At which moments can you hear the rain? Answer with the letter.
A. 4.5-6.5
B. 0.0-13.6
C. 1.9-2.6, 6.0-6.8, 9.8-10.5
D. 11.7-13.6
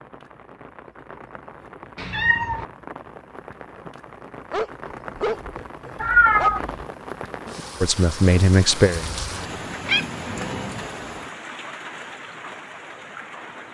B.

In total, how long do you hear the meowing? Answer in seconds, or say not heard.
2 s.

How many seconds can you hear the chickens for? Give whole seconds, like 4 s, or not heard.
not heard.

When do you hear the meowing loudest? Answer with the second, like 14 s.
6 s.